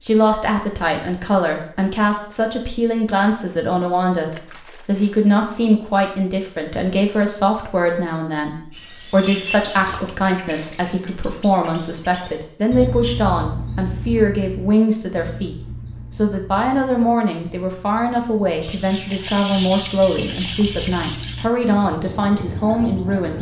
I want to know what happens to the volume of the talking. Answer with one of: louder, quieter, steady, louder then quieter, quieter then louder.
steady.